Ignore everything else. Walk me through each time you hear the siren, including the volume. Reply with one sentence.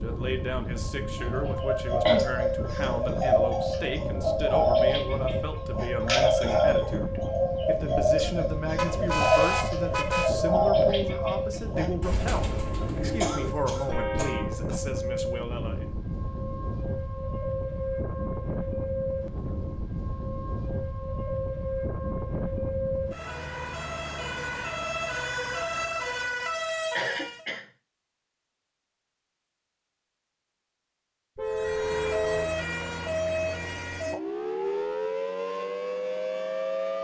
The siren can be heard from 0.0 to 27.4 s, at a steady volume; and from 31.4 to 36.9 s, at a steady volume.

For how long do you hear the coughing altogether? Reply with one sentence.
You can hear the coughing for 3 seconds altogether.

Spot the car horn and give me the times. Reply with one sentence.
You can hear the car horn from 8.8 to 10.3 s, from 13.9 to 14.6 s and from 31.4 to 32.5 s.